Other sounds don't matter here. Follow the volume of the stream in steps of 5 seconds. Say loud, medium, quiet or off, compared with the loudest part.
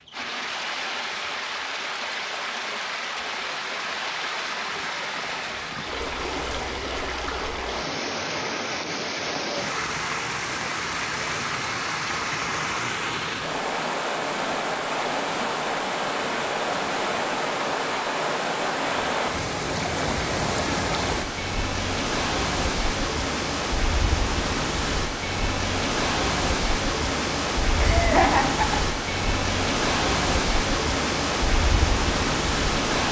medium, medium, loud, loud, loud, loud, loud.